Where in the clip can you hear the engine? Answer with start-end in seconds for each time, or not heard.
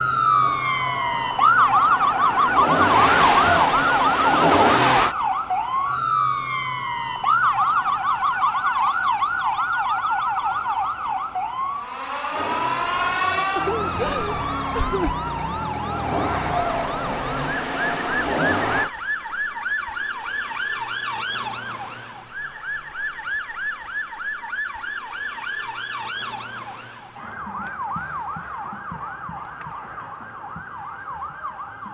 0.1-5.2, 12.3-18.9.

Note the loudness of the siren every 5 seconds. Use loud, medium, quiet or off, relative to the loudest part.
loud, loud, medium, medium, medium, quiet, quiet.